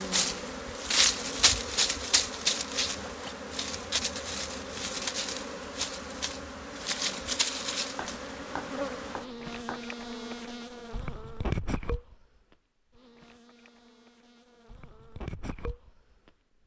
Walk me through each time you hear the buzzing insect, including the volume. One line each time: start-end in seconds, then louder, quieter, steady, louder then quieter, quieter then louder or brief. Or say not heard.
0.0-16.6 quieter.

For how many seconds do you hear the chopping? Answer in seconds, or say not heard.
2 s.